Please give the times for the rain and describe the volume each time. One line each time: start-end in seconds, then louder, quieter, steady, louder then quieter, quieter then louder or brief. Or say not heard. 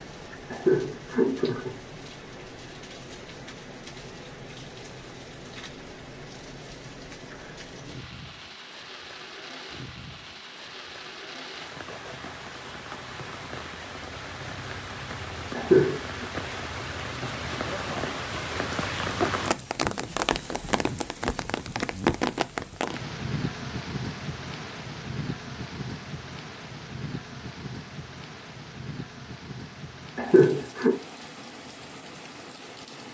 0.0-33.0 louder then quieter.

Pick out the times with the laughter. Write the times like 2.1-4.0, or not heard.
0.5-1.8, 15.6-16.2, 30.1-31.0.